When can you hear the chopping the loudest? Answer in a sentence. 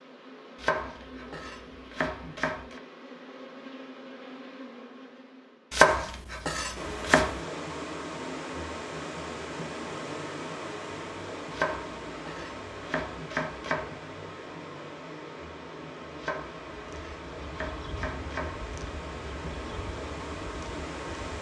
The volume of the chopping peaks at 6 seconds.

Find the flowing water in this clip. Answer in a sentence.
You can hear the flowing water from 6.8 to 21.3 s.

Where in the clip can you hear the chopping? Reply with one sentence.
You can hear the chopping from 0.6 to 2.8 s, from 5.7 to 7.4 s, from 11.5 to 13.9 s and from 16.1 to 18.6 s.